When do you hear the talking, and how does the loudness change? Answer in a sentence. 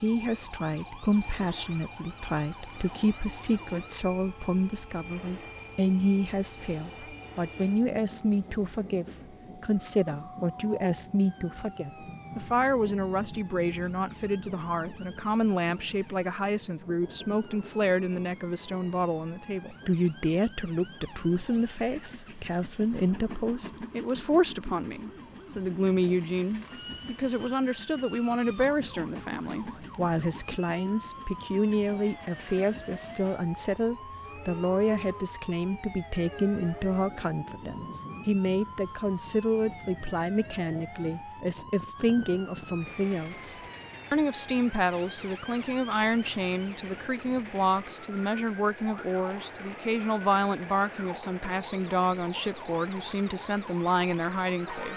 You can hear the talking from 0.0 to 54.9 s, at a steady volume.